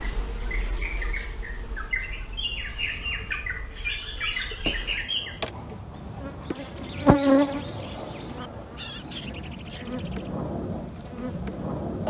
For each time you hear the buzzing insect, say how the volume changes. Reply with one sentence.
The buzzing insect can be heard from 0.0 to 12.0 s, getting louder then quieter.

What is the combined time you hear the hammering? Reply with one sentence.
You can't hear the hammering here.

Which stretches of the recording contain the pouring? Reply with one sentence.
The pouring can't be heard in this clip.